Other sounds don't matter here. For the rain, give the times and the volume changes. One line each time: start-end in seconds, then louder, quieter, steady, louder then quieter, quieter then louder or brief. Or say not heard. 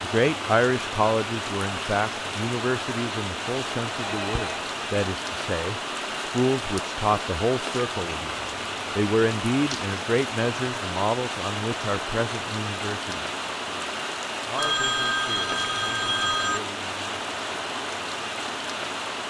0.0-19.2 steady.